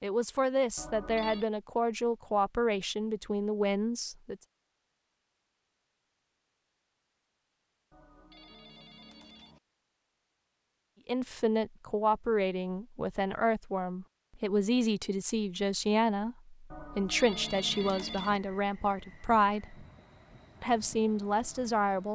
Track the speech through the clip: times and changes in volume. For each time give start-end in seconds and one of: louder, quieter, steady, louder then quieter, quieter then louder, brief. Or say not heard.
0.0-4.3 steady
11.1-19.9 steady
20.6-22.1 brief.